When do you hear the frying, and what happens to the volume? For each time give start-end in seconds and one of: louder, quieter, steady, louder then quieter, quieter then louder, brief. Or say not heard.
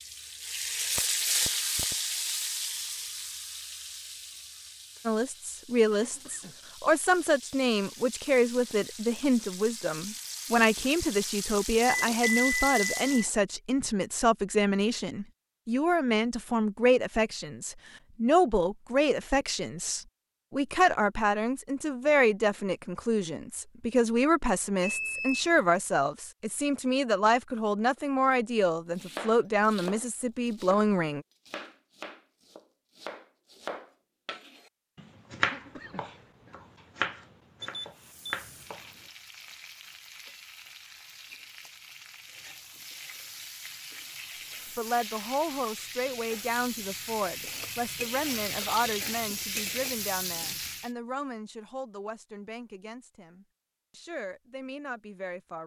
0.0-13.2 quieter then louder
37.9-50.9 louder.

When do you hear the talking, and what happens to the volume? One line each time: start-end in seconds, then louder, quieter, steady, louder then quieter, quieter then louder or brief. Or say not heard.
5.0-31.2 steady
44.8-55.6 quieter.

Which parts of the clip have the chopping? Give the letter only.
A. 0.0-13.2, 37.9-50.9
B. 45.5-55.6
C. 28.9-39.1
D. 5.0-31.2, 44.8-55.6
C.